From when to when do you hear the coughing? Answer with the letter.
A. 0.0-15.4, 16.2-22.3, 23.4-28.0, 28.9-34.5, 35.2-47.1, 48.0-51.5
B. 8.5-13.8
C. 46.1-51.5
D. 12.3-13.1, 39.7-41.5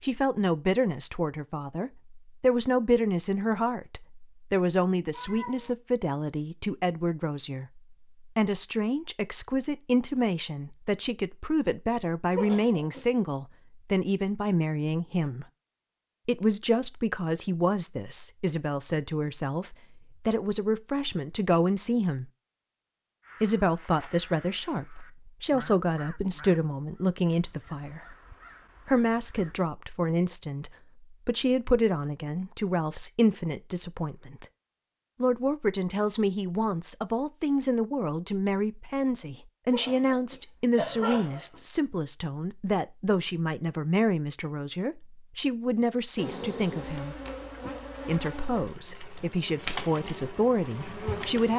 D.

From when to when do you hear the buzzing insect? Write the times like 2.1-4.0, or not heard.
46.1-51.5.